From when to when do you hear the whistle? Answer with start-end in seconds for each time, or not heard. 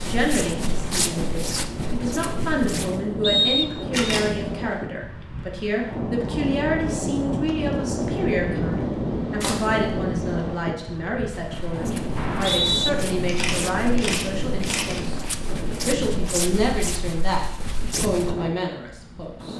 3.2-4.0, 12.2-12.9.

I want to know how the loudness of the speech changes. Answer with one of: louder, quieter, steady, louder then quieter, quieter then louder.
steady.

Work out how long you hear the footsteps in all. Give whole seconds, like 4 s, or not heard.
10 s.